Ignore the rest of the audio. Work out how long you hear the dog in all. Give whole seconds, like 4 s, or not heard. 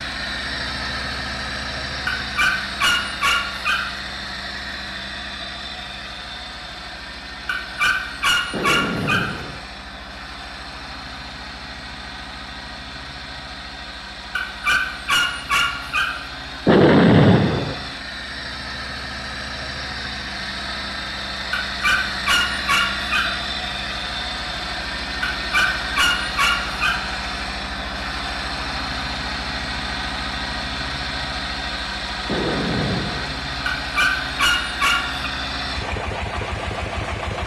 11 s.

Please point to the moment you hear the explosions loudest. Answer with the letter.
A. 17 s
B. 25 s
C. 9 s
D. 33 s
A.